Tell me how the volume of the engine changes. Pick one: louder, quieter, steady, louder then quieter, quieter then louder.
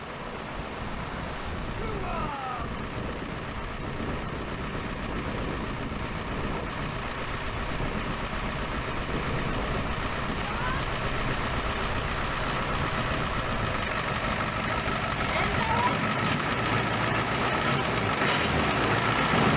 louder.